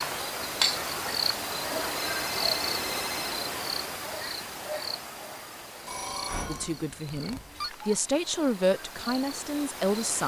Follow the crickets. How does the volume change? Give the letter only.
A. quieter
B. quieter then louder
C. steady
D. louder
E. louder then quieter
A.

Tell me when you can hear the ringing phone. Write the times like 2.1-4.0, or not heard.
2.0-3.4, 5.8-7.7.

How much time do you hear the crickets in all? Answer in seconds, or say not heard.
10 s.